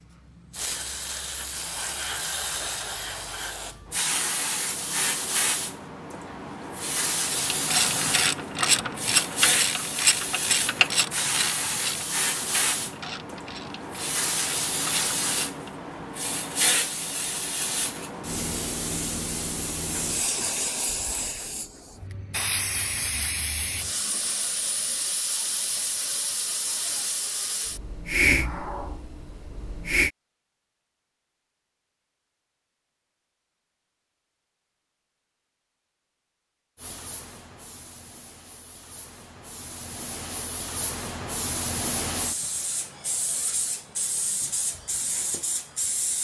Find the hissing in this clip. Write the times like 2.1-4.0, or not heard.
0.5-30.1, 36.8-46.1.